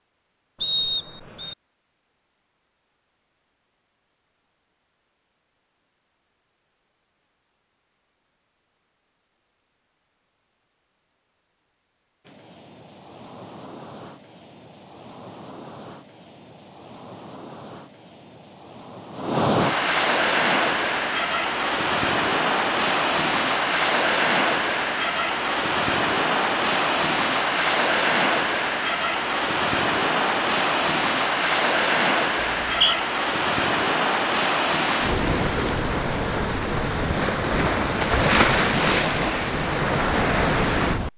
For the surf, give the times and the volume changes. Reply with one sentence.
You can hear the surf from 12.2 to 41.1 s, getting louder.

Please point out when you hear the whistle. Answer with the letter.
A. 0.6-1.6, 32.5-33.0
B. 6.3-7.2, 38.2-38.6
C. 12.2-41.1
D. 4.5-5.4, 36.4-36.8
A.